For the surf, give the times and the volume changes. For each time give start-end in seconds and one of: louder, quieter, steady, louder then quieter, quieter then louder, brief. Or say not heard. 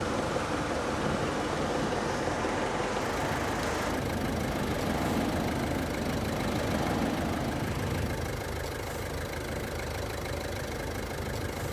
0.0-11.6 quieter.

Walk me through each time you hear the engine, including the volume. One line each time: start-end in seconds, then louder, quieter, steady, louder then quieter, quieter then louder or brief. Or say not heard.
0.0-11.6 steady.